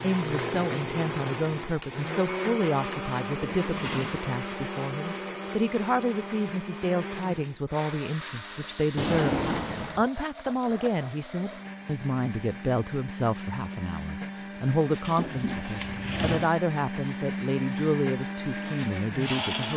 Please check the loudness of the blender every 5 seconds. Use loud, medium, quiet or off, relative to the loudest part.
loud, medium, medium, loud.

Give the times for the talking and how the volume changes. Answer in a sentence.
You can hear the talking from 0.0 to 19.7 s, at a steady volume.